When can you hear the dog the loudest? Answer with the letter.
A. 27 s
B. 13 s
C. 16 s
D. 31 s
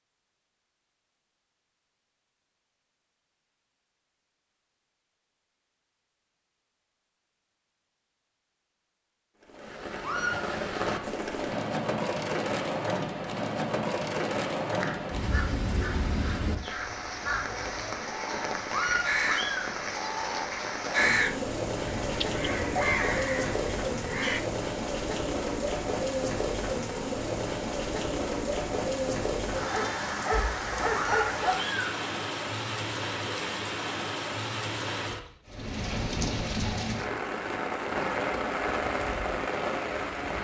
D.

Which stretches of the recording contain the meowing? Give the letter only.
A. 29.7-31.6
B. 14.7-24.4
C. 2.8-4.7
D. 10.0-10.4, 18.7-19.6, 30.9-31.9
D.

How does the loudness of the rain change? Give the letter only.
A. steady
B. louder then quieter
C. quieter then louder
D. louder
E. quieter
A.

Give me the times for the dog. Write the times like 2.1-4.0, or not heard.
29.7-31.6.